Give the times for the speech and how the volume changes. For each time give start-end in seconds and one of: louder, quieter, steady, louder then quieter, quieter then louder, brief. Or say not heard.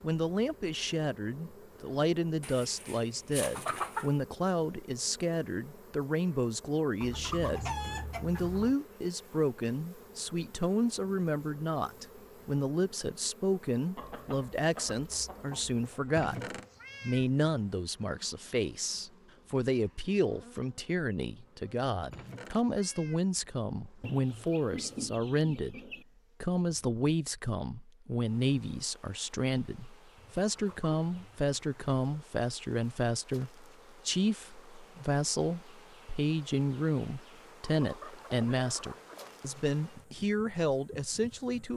0.0-16.4 steady
17.0-41.7 steady.